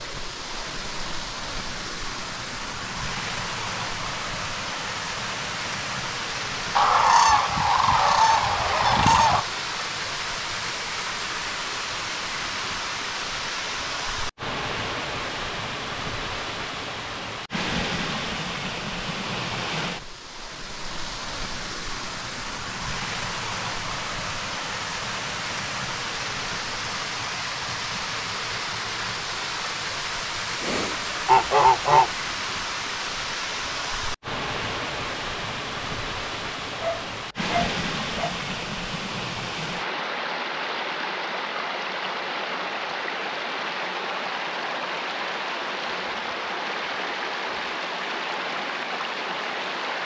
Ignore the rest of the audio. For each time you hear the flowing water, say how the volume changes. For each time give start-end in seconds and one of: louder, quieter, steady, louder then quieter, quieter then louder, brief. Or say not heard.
0.0-50.0 steady.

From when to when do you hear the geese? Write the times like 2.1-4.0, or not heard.
6.8-9.4, 30.6-32.1.